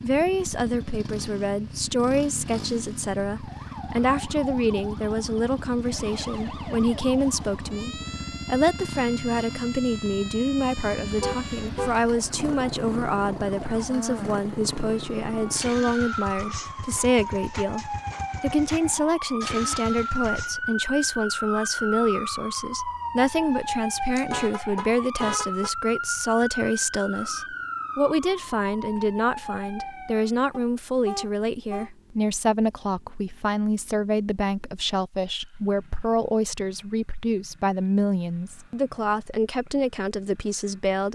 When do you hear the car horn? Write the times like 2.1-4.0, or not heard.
11.1-12.0, 23.5-25.7, 30.5-31.9.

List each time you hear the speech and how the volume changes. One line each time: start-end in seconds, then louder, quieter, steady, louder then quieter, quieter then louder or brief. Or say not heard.
0.0-41.1 steady.